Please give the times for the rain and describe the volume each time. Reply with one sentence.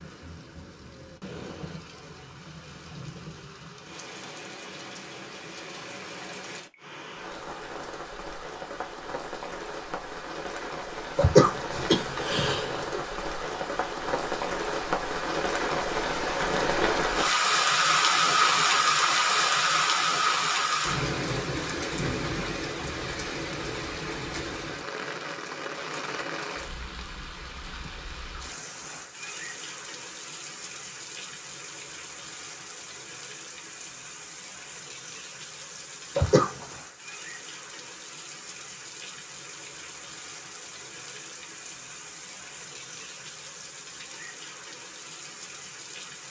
You can hear the rain from 0.0 to 46.2 s, getting louder then quieter.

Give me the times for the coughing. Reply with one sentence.
You can hear the coughing from 11.2 to 13.0 s and from 36.1 to 36.8 s.